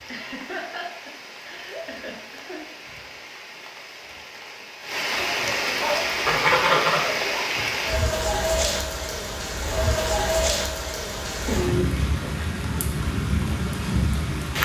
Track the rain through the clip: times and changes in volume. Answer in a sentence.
The rain can be heard from 0.0 to 14.6 s, getting louder.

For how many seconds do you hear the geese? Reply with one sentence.
You can hear the geese for 2 seconds altogether.